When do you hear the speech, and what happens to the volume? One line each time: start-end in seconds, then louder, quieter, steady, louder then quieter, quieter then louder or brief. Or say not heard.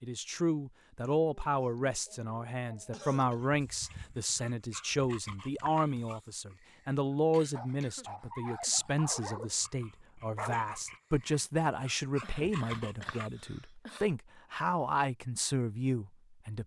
0.0-16.6 steady.